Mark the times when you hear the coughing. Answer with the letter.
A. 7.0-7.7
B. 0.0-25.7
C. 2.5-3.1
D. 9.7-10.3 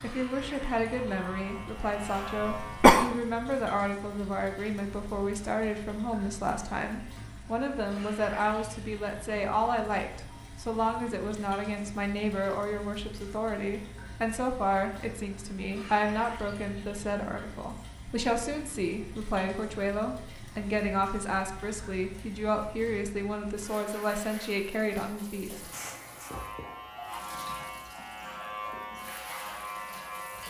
C.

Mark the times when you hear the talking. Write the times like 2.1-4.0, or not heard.
0.0-25.7.